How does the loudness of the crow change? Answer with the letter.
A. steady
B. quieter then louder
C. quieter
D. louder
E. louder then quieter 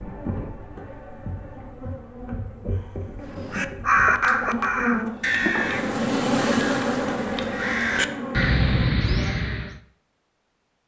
B.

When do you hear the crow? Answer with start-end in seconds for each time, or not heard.
3.3-9.8.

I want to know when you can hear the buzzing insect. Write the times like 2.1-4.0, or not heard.
0.0-8.9.